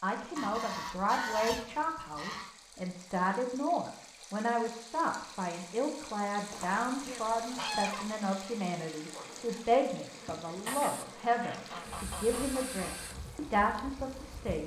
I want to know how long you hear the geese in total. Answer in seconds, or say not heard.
6 s.